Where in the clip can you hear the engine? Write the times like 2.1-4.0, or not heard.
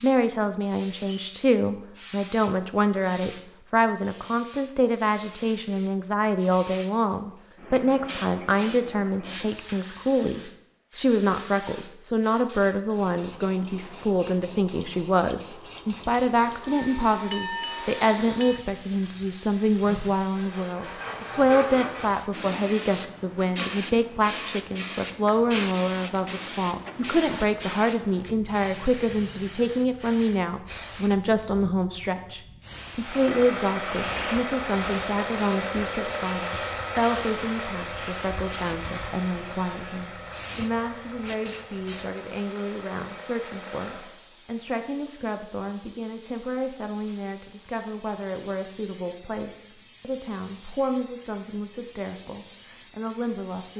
33.0-44.1.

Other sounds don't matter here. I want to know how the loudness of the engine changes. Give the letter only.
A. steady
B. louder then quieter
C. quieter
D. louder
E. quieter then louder
C.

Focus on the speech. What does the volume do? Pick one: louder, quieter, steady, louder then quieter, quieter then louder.
quieter.